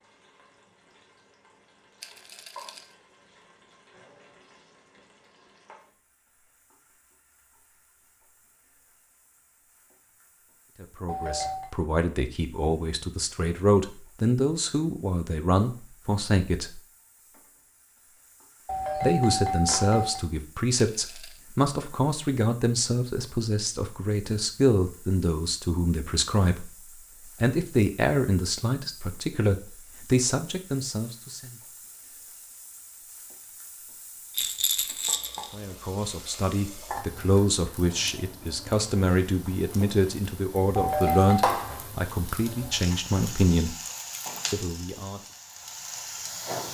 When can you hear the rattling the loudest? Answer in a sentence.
The volume of the rattling peaks at 35 seconds.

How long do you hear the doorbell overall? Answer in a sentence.
You can hear the doorbell for 3 seconds altogether.